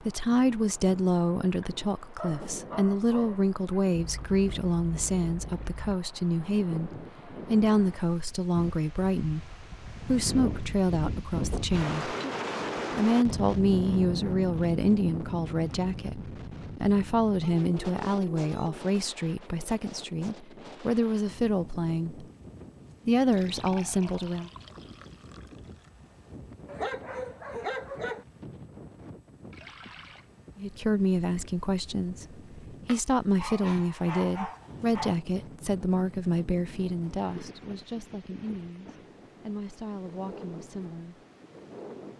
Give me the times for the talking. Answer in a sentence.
The talking can be heard from 0.0 to 12.2 s, from 12.9 to 22.2 s, from 23.1 to 24.5 s and from 30.6 to 41.2 s.